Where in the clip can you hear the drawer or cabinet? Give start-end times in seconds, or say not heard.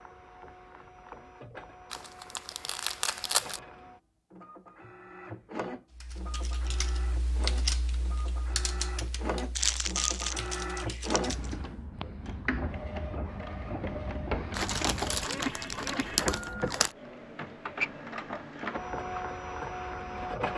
not heard.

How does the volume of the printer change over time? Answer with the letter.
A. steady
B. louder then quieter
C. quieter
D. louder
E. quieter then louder
D.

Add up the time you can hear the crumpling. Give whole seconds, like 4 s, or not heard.
6 s.